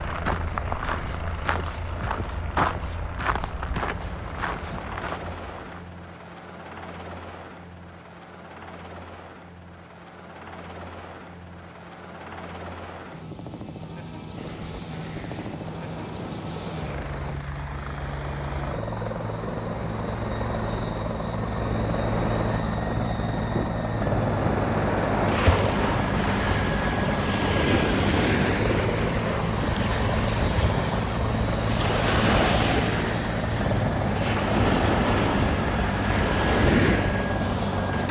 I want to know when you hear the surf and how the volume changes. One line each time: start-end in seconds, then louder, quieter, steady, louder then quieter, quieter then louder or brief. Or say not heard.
14.3-38.0 louder.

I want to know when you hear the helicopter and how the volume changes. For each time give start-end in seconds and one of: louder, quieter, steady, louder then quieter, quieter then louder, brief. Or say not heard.
0.0-38.0 louder.